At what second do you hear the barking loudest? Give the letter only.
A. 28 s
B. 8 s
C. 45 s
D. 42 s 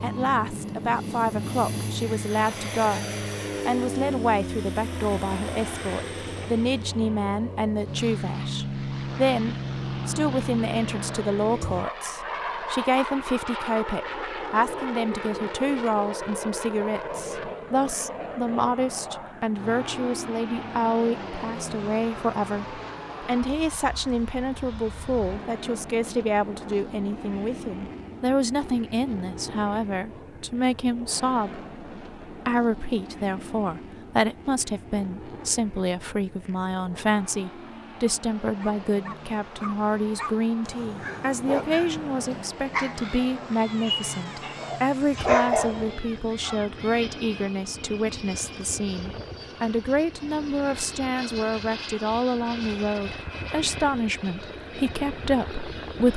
C.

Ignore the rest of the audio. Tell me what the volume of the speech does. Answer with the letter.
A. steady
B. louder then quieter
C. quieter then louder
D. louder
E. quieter
A.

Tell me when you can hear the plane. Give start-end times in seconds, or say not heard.
0.0-56.1.